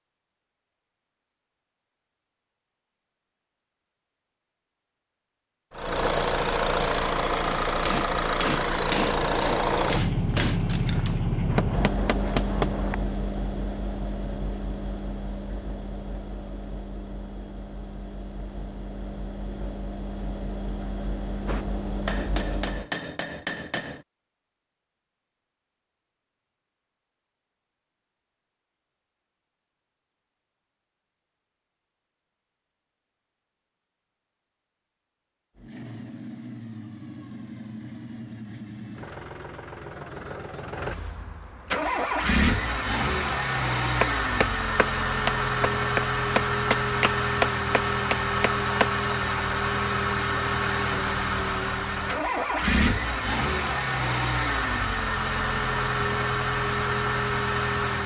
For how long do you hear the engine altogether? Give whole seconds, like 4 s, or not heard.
40 s.